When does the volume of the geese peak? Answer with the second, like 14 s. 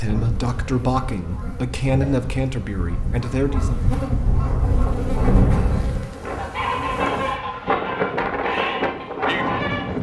5 s.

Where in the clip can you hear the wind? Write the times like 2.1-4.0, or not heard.
4.3-9.9.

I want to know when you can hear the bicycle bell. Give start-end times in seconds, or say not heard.
not heard.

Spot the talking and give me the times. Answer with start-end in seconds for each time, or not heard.
0.0-3.8.